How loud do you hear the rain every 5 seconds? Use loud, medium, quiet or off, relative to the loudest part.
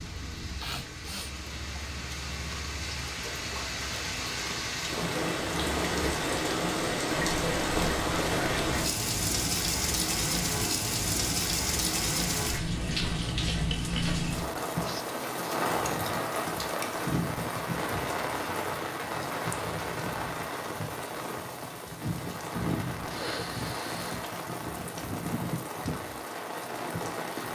medium, loud, loud, loud, medium, medium.